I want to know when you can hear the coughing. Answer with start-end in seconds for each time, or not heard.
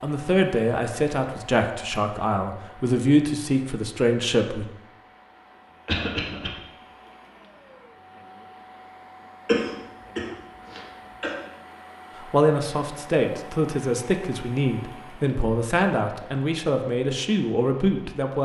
5.8-6.5, 9.4-11.3.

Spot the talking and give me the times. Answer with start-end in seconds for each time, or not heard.
0.0-4.7, 12.2-18.4.